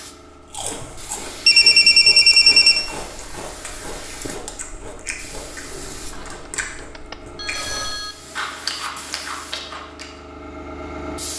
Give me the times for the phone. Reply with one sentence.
You can hear the phone from 1.4 to 2.9 s and from 6.1 to 8.2 s.